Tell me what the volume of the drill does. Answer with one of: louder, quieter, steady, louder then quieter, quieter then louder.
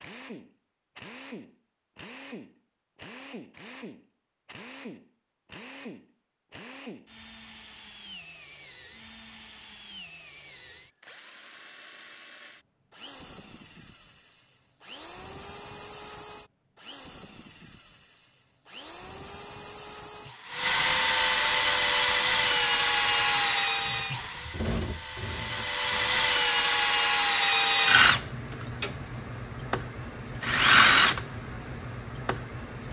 louder.